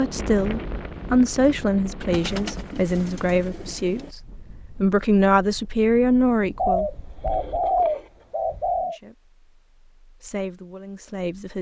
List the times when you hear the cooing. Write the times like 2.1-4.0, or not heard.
2.1-4.1, 6.5-8.9.